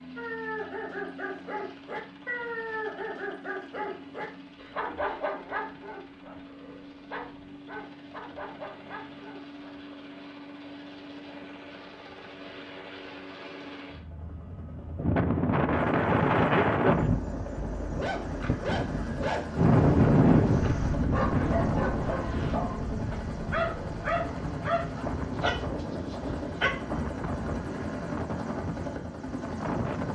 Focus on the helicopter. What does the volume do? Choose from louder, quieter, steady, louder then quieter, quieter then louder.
louder.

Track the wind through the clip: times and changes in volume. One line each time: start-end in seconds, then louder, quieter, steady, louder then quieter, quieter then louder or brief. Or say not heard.
14.9-30.1 quieter.